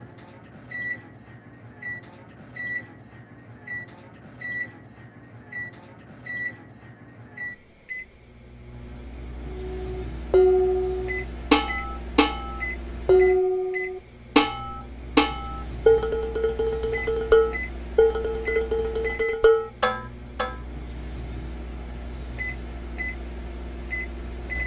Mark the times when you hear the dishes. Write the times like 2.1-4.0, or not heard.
9.6-20.6.